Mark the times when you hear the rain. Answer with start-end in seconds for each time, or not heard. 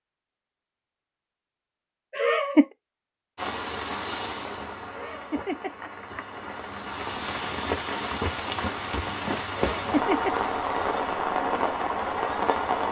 3.4-12.8.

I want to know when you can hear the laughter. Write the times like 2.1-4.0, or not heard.
2.1-2.6, 4.9-6.4, 9.5-10.3.